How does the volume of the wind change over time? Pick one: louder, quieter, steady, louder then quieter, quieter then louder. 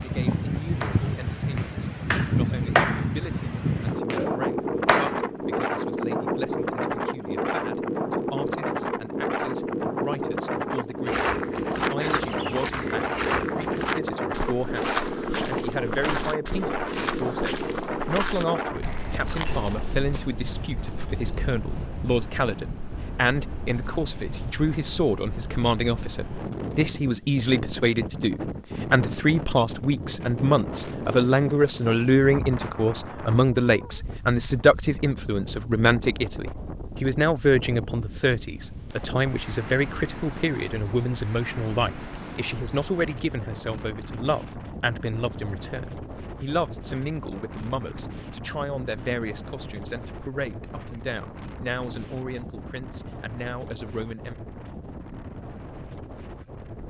quieter.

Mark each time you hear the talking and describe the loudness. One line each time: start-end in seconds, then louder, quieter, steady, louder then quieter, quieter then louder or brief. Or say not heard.
0.0-54.4 louder then quieter.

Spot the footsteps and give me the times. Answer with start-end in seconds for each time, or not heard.
11.1-19.9.